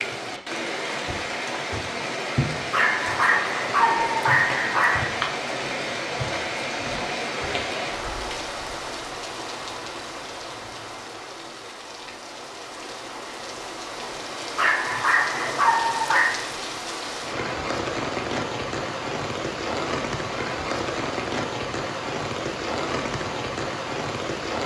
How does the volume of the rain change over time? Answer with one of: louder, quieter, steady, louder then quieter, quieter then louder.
quieter then louder.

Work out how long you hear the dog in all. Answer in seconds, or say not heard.
4 s.